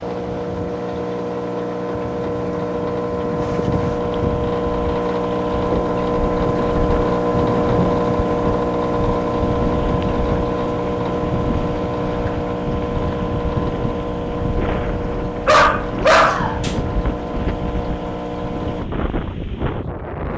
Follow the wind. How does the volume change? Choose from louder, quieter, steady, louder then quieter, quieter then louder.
steady.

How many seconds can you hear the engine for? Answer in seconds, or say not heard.
19 s.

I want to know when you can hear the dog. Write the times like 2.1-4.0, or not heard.
15.4-16.8.